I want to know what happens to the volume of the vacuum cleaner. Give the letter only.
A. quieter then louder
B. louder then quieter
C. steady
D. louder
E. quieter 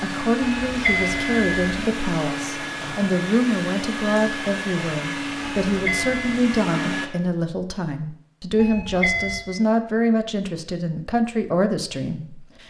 C.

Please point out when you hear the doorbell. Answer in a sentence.
The doorbell can be heard from 0.4 to 1.8 s, from 5.7 to 6.5 s and from 8.6 to 9.6 s.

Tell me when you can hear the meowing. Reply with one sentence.
You can't hear the meowing here.